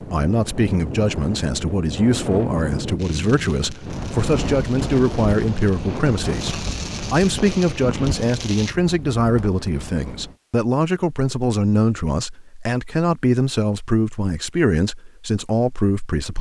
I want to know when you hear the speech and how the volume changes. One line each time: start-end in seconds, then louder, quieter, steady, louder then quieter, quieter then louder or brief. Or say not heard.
0.0-16.3 steady.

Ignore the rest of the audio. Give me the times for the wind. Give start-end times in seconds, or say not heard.
0.0-10.3.